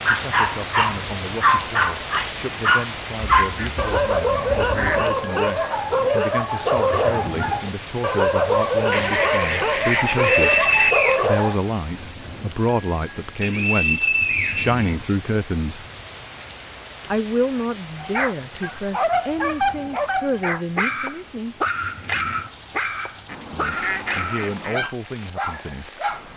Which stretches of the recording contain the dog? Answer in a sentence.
The dog can be heard from 0.1 to 11.6 s and from 18.0 to 26.2 s.